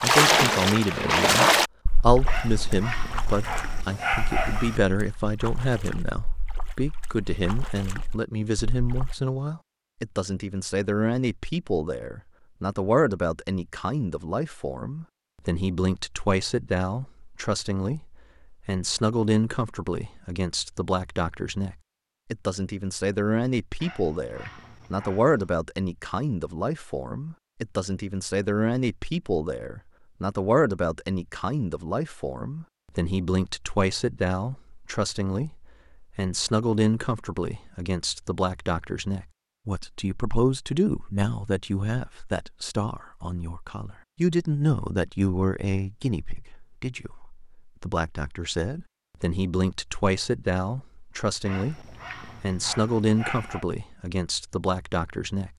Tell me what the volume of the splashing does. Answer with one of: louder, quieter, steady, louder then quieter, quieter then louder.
quieter.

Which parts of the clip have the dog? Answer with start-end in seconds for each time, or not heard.
2.2-4.8, 23.8-25.5, 51.5-53.6.